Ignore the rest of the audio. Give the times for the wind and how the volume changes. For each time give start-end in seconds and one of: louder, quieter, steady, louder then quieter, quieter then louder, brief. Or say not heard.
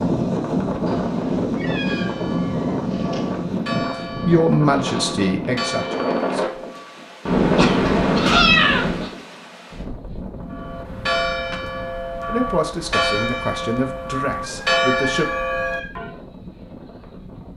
0.0-17.5 quieter.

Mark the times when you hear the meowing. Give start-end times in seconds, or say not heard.
0.8-3.5, 7.2-9.1, 14.4-15.9.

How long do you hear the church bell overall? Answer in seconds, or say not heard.
11 s.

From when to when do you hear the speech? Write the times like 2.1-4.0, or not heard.
3.8-6.6, 12.2-15.3.